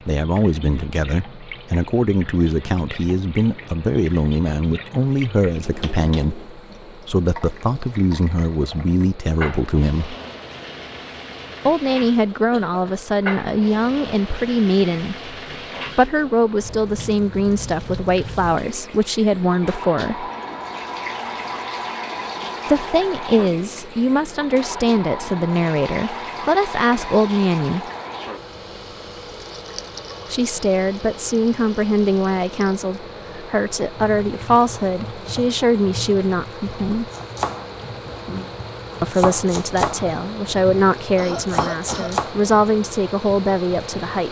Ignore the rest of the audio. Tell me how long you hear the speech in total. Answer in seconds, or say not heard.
35 s.